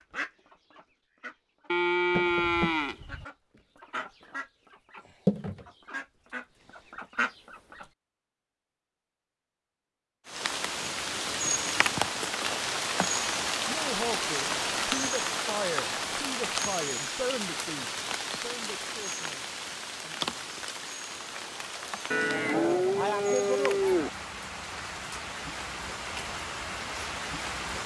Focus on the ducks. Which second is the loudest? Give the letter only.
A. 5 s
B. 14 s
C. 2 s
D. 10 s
A.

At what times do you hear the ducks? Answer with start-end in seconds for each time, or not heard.
0.1-7.8.